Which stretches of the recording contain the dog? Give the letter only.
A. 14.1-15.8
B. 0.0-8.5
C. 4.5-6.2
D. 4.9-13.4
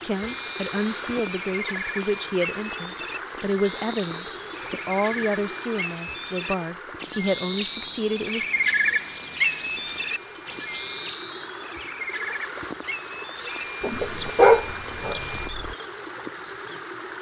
A.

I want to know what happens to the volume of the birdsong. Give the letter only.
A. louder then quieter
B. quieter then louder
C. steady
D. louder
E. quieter
A.